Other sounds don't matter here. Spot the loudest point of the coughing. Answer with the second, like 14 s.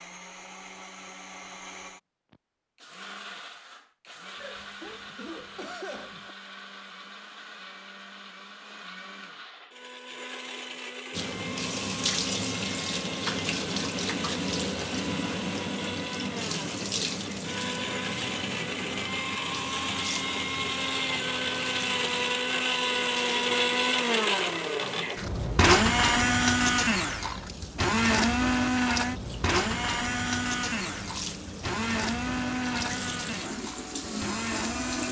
6 s.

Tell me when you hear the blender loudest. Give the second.
26 s.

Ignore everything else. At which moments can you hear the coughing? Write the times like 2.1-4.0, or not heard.
4.3-6.3.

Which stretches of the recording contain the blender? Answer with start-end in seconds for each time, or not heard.
0.0-35.0.